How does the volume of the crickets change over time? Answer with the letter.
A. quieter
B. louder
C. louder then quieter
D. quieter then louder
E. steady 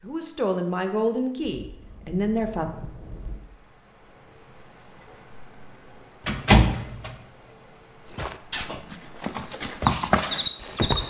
B.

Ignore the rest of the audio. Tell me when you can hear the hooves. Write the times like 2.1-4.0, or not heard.
8.1-11.0.